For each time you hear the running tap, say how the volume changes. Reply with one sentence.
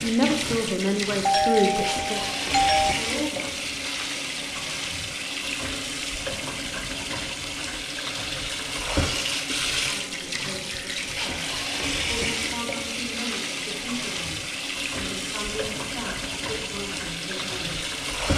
You can hear the running tap from 0.0 to 18.3 s, at a steady volume.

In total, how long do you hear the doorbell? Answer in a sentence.
You can hear the doorbell for 2 seconds altogether.